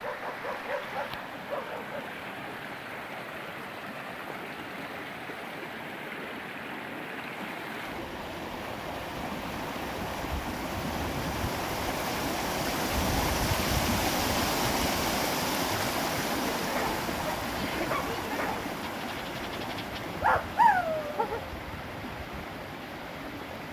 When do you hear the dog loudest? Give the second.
21 s.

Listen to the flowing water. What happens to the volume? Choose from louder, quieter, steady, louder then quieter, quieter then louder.
louder then quieter.